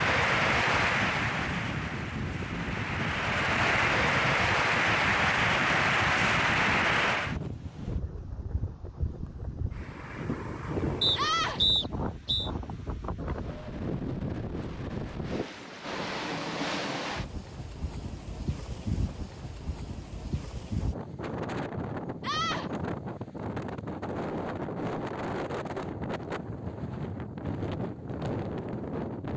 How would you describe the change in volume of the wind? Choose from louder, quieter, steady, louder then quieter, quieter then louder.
steady.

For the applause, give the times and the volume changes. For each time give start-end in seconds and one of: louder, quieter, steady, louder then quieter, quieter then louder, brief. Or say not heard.
0.0-7.4 quieter then louder.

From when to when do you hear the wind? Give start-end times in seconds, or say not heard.
0.0-29.3.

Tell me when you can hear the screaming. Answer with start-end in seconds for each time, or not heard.
11.2-11.6, 22.2-22.7.